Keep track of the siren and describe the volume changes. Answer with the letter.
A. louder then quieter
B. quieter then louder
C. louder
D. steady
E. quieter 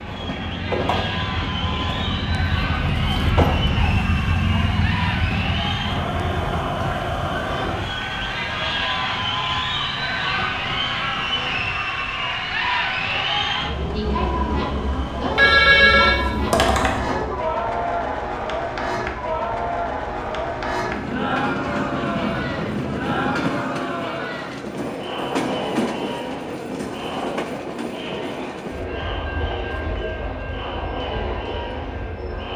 A.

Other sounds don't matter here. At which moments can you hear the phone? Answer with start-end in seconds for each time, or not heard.
15.3-17.0.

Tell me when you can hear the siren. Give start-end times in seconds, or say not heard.
0.0-8.9.